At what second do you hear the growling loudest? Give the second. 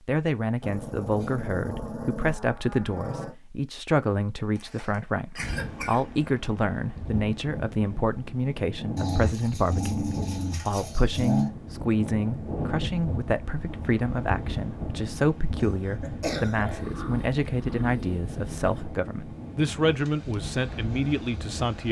11 s.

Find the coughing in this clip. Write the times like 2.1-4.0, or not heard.
4.5-6.2, 15.6-17.0.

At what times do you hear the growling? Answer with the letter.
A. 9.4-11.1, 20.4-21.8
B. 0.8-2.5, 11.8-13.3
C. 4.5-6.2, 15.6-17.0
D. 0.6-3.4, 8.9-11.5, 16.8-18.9
D.